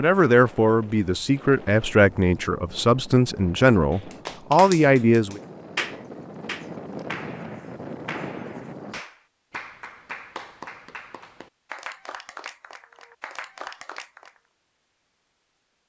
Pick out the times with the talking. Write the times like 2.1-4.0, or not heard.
0.0-5.4.